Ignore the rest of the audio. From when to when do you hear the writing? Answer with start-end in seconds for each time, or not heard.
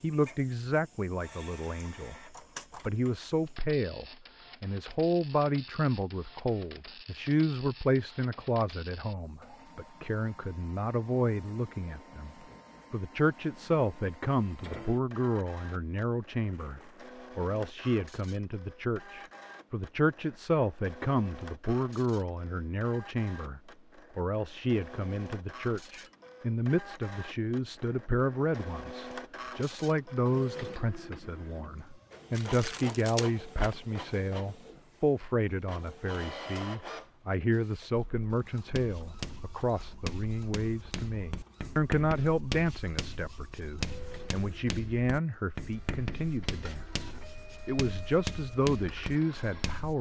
38.7-49.9.